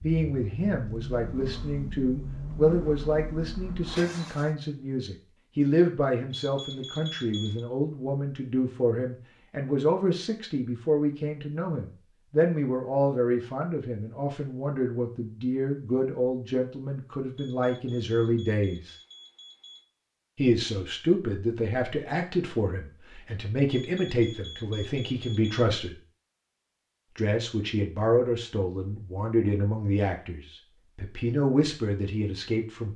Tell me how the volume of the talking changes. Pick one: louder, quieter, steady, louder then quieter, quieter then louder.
steady.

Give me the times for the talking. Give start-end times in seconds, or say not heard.
0.0-18.9, 20.4-25.9, 27.1-32.9.